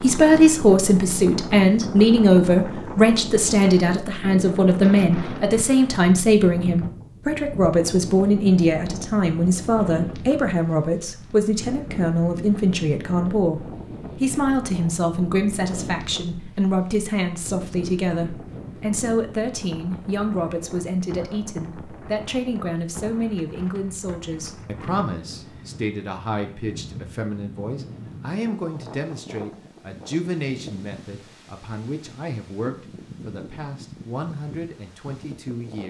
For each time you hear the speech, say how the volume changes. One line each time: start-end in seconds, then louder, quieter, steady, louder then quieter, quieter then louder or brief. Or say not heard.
0.0-35.8 quieter.